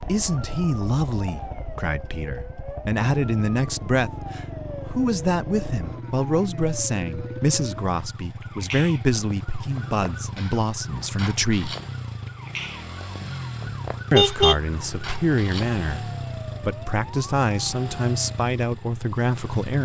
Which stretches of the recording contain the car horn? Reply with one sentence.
The car horn can be heard from 13.7 to 14.6 s.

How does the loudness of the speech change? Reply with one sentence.
The volume of the speech stays about the same.